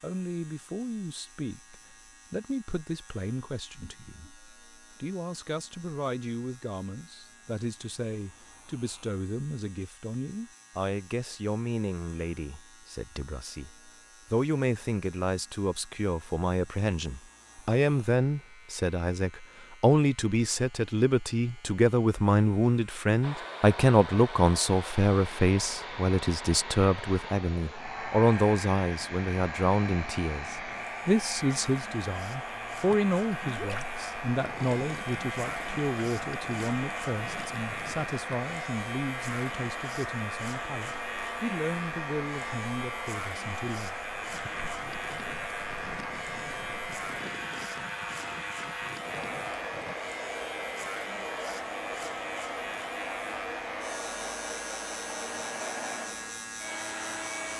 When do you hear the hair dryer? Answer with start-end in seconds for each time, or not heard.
23.2-57.5.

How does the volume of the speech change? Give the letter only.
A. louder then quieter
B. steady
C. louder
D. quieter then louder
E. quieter
A.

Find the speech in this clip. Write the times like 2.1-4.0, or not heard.
0.0-44.5.